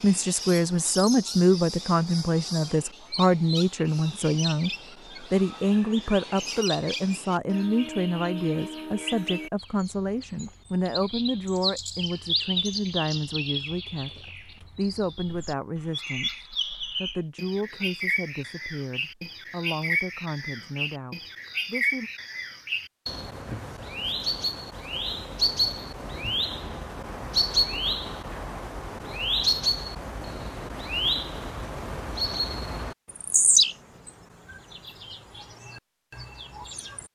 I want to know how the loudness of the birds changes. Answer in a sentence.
The loudness of the birds goes up.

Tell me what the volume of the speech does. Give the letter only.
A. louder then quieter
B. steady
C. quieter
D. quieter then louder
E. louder
C.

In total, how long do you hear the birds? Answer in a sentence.
The birds can be heard for 37 seconds in total.